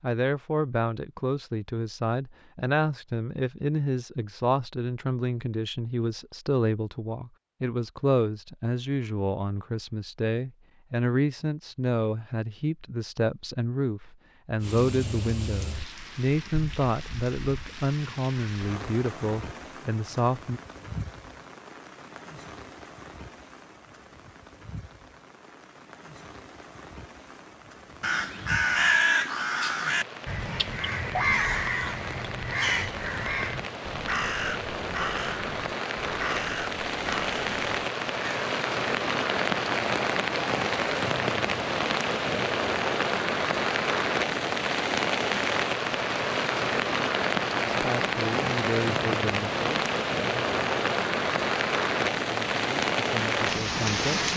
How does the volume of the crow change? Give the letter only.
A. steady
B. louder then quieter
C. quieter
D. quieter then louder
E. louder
C.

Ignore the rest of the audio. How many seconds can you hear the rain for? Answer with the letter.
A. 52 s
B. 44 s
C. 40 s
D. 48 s
C.